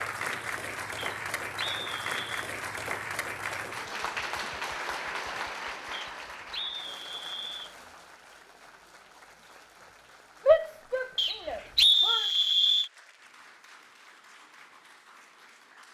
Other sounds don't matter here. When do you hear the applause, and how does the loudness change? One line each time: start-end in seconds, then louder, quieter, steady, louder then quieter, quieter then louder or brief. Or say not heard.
0.0-15.8 quieter.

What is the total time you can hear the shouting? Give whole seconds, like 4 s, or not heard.
2 s.